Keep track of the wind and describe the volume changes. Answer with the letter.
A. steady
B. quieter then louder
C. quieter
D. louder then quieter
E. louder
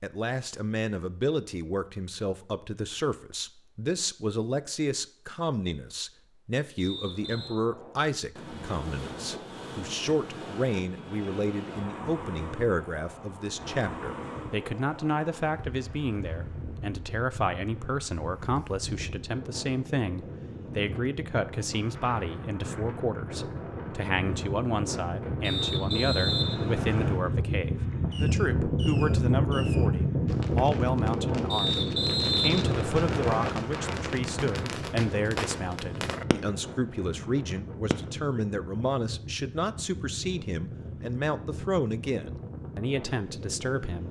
D.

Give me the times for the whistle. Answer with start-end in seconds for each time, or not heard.
6.8-7.6, 25.4-27.2, 31.5-33.5.